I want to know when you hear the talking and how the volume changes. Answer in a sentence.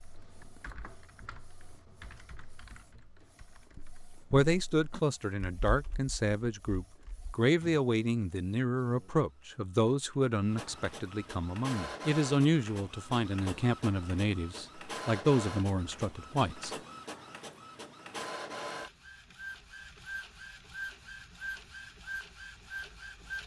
The talking can be heard from 4.3 to 16.8 s, at a steady volume.